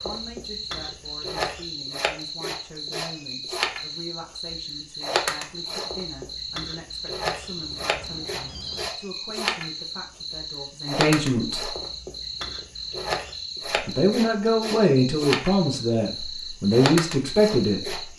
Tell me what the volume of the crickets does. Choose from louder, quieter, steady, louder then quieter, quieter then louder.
steady.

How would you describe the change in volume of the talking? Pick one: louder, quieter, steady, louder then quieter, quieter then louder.
louder.